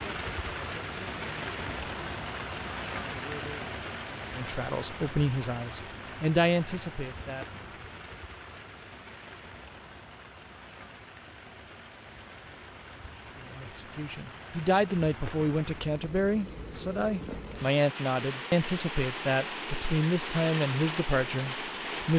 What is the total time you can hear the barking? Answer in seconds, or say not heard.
not heard.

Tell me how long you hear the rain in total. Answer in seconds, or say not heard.
22 s.